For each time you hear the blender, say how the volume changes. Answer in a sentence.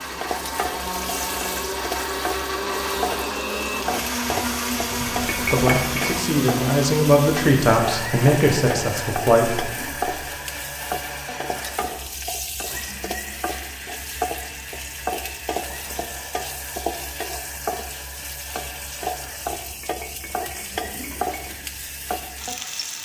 You can hear the blender from 0.0 to 23.0 s, getting quieter.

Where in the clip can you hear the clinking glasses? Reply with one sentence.
The clinking glasses can be heard from 4.8 to 6.2 s and from 19.5 to 21.6 s.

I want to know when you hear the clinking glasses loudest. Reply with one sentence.
The loudest moment of the clinking glasses is at 6 seconds.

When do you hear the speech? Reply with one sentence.
The speech can be heard from 5.3 to 9.8 s.